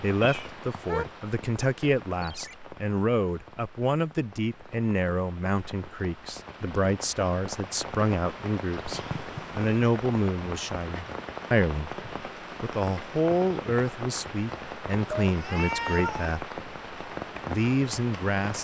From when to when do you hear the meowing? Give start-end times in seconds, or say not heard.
0.2-1.1, 8.8-9.7, 15.2-16.4.